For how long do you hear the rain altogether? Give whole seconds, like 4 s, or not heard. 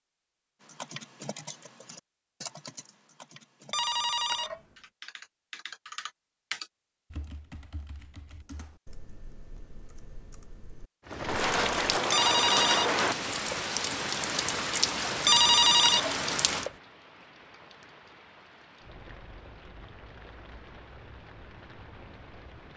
12 s.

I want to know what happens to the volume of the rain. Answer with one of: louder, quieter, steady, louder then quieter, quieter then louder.
quieter.